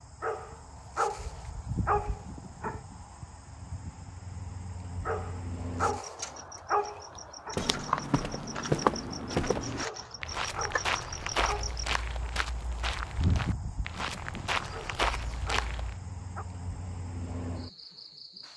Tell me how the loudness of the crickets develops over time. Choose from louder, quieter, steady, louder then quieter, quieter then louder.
louder then quieter.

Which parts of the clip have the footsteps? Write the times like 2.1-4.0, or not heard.
7.5-16.0.